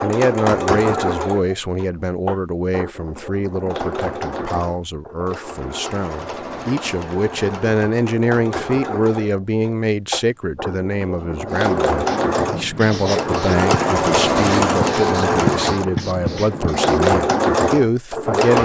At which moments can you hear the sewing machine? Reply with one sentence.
You can hear the sewing machine from 0.0 to 18.6 s.